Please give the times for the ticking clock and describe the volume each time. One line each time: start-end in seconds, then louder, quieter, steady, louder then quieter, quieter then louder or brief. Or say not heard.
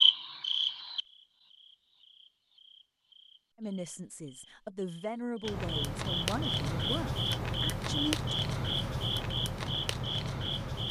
not heard.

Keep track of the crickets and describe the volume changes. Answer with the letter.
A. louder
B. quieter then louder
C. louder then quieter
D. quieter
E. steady
B.